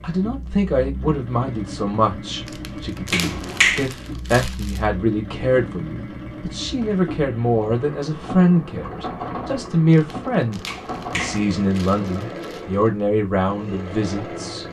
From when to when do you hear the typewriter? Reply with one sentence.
You can't hear the typewriter here.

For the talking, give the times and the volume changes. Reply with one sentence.
You can hear the talking from 0.0 to 14.6 s, at a steady volume.